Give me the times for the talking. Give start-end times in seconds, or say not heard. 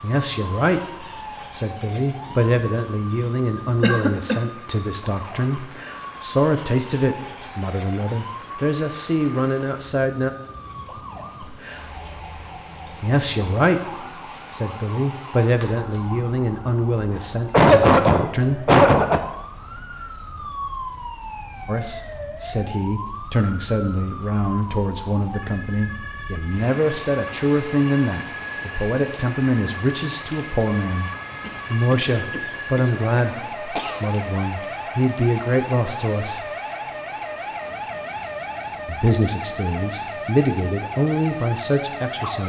0.0-10.3, 13.0-18.7, 21.6-31.1, 31.7-36.5, 38.9-42.4.